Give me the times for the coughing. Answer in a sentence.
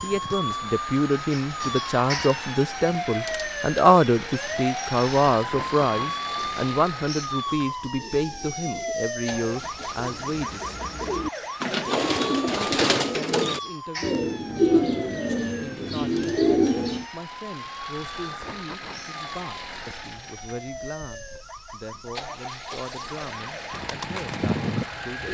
You can't hear the coughing here.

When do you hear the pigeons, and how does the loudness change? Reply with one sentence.
The pigeons can be heard from 7.9 to 17.1 s, getting louder; and briefly from 23.7 to 25.2 s.